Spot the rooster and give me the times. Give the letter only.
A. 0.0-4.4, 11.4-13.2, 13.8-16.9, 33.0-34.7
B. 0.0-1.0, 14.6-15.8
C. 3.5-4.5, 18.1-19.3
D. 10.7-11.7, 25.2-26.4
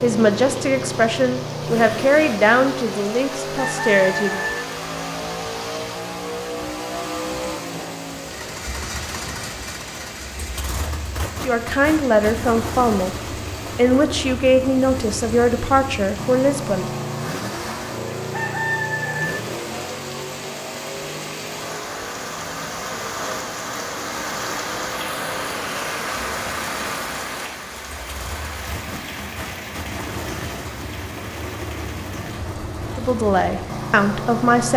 C.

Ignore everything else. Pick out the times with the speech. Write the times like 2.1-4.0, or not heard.
0.0-4.4, 11.4-13.2, 13.8-16.9, 33.0-34.7.